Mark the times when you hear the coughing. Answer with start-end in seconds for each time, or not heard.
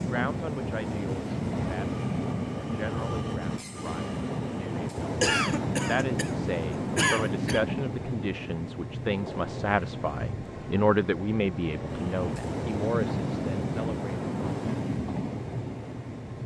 5.2-7.7.